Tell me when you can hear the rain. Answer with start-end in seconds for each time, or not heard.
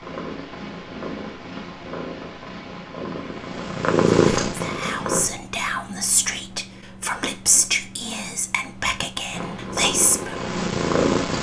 not heard.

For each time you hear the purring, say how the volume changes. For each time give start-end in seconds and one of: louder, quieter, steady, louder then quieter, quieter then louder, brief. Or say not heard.
0.0-5.3 louder
9.3-11.3 brief.